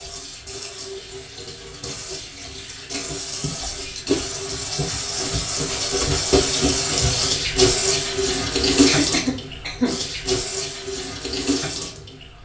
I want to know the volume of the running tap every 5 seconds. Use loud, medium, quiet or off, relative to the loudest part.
medium, loud, medium.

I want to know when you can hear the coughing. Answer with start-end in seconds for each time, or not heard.
8.8-10.0.